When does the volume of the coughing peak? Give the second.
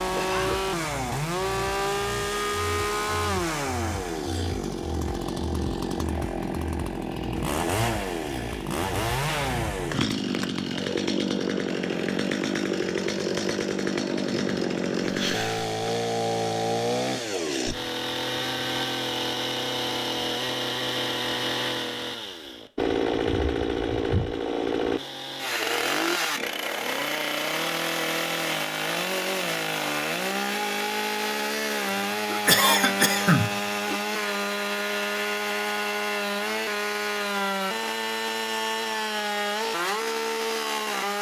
33 s.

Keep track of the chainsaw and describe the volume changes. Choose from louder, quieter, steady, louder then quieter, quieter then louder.
steady.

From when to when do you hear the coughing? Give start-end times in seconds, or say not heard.
0.1-0.7, 15.0-15.7, 32.3-34.0.